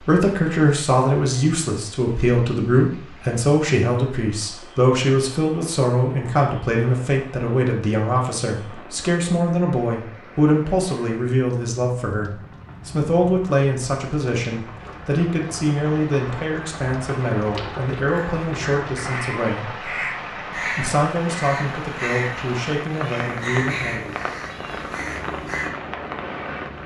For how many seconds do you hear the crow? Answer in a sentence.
You can hear the crow for 8 seconds altogether.